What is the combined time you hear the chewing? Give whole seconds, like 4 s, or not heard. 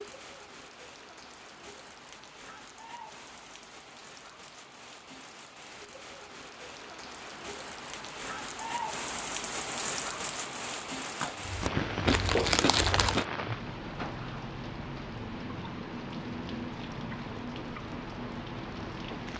2 s.